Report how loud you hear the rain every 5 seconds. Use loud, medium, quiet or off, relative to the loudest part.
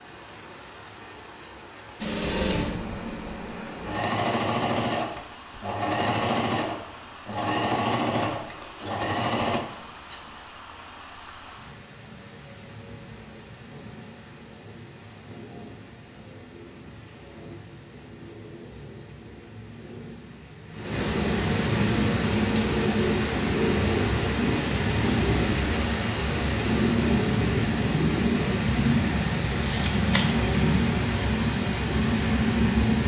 quiet, quiet, quiet, quiet, loud, loud, loud.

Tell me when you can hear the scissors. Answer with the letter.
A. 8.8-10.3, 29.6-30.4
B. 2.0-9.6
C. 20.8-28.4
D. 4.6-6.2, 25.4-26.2
A.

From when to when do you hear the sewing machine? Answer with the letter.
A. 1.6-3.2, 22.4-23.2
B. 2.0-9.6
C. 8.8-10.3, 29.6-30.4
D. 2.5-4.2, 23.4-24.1
B.